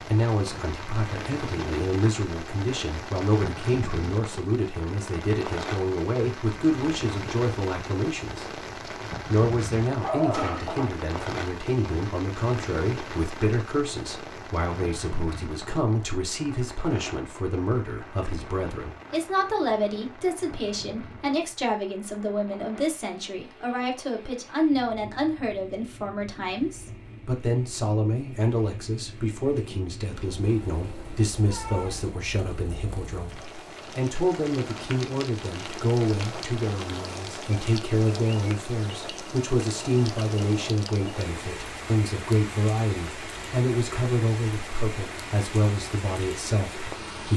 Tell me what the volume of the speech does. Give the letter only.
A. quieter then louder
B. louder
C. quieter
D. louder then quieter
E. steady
E.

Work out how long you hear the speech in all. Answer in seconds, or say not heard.
47 s.